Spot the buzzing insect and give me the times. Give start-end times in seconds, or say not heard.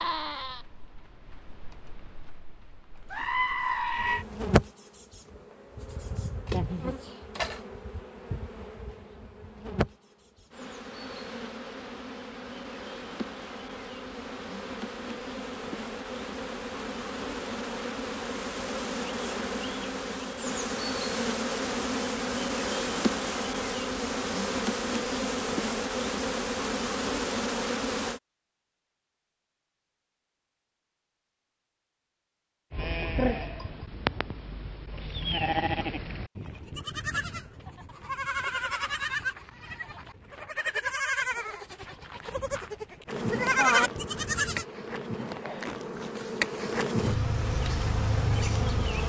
4.0-28.2, 43.0-49.0.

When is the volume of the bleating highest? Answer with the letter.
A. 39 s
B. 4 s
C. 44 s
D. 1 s
C.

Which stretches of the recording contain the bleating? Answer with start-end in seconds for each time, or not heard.
0.0-4.2, 32.7-44.6.